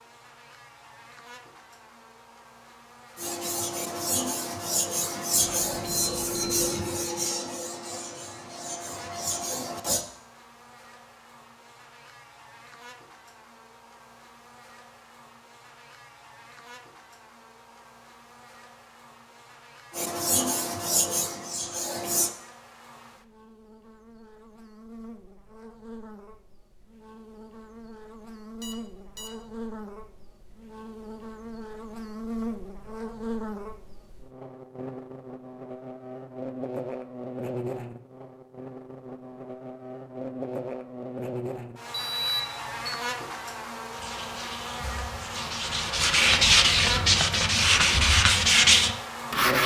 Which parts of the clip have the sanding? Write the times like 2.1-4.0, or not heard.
3.1-10.1, 19.9-22.3, 43.9-49.6.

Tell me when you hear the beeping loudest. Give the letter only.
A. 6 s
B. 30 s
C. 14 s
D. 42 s
D.